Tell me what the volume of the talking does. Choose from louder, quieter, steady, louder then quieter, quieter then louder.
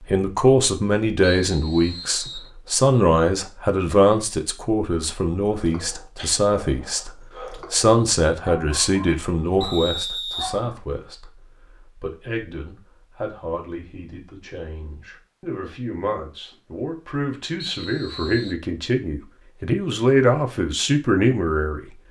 quieter then louder.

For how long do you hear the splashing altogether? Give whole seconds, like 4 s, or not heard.
not heard.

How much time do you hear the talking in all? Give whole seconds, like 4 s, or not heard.
22 s.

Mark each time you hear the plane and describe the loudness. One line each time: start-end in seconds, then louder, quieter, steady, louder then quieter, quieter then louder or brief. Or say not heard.
not heard.